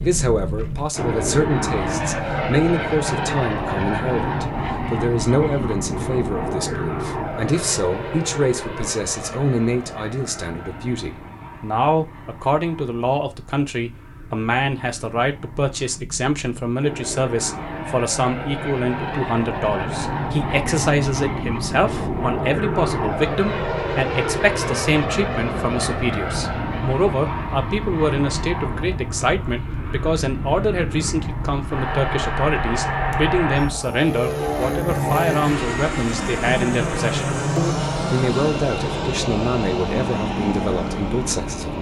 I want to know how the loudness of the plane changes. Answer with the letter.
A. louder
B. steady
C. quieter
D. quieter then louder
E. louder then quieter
D.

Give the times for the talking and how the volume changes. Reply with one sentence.
The talking can be heard from 0.0 to 41.7 s, at a steady volume.